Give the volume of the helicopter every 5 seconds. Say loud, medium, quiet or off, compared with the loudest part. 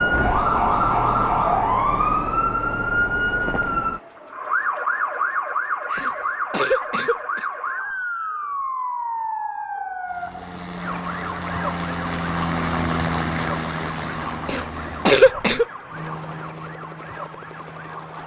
off, off, loud, medium.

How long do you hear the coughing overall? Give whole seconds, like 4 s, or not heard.
3 s.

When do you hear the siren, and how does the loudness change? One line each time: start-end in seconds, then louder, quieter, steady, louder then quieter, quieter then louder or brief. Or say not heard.
0.0-18.2 quieter.